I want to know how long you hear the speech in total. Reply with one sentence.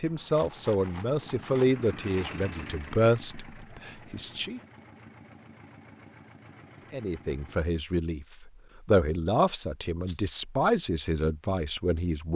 You can hear the speech for 10 seconds altogether.